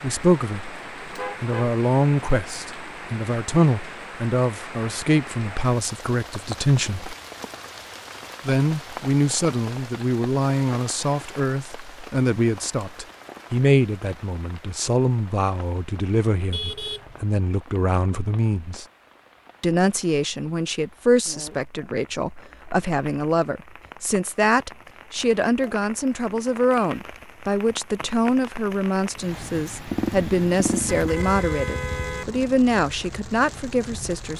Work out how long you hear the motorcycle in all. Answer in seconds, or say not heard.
2 s.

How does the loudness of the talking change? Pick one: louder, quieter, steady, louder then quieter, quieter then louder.
steady.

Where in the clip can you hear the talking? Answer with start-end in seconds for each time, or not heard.
0.0-7.2, 8.4-18.9, 19.6-34.3.